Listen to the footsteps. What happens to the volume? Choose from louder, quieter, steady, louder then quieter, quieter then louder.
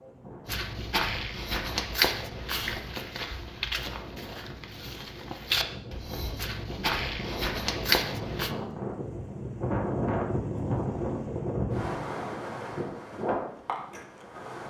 quieter then louder.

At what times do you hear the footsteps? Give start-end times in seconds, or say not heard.
0.5-8.5.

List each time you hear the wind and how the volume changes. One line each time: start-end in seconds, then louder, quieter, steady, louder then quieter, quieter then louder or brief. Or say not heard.
0.0-14.6 louder.